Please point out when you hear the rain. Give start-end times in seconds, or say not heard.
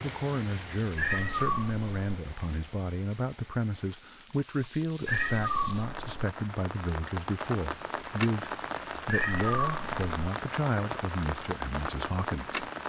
0.0-12.8.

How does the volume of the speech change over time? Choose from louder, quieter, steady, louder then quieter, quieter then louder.
steady.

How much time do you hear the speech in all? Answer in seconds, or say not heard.
13 s.